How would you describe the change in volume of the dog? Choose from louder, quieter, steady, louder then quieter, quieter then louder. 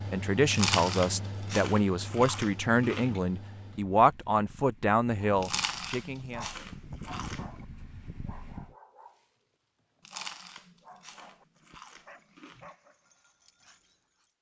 quieter.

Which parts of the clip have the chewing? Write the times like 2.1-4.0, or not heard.
0.5-3.2, 5.4-7.6, 10.0-12.7.